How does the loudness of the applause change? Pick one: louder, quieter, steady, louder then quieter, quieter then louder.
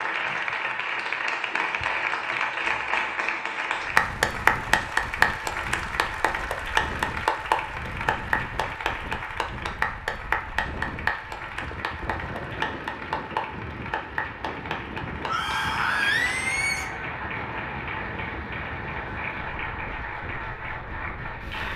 quieter.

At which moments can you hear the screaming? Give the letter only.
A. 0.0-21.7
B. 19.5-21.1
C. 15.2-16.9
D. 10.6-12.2
C.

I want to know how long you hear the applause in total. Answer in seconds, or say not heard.
22 s.